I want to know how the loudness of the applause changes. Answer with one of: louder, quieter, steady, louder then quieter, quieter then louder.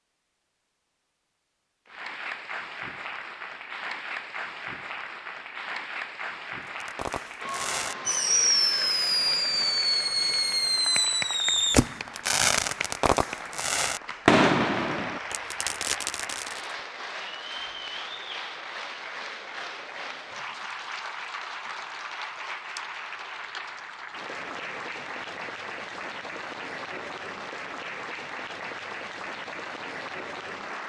steady.